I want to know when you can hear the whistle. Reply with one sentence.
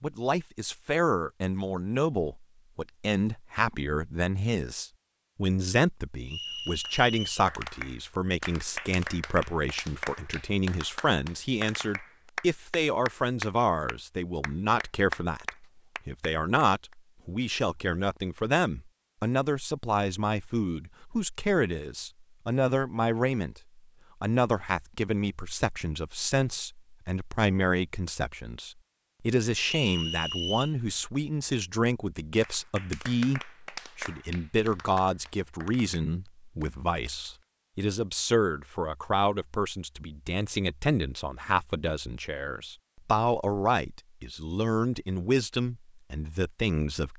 You can hear the whistle from 6.2 to 7.5 s and from 29.6 to 30.8 s.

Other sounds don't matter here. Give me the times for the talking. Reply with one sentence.
The talking can be heard from 0.0 to 47.1 s.